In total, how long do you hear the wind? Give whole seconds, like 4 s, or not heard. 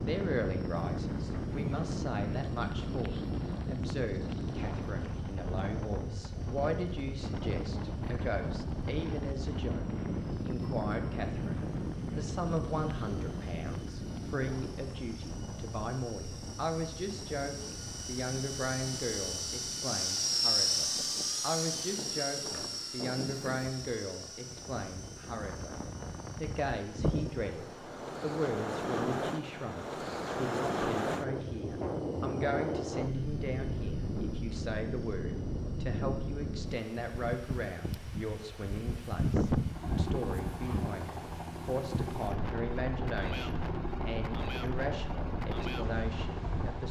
47 s.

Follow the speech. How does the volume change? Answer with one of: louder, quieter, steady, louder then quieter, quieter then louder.
steady.